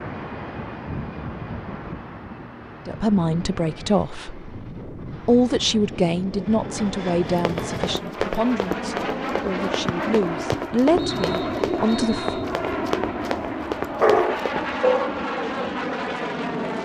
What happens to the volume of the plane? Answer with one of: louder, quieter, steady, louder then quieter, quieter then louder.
louder.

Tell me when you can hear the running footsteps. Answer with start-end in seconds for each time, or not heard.
7.2-14.7.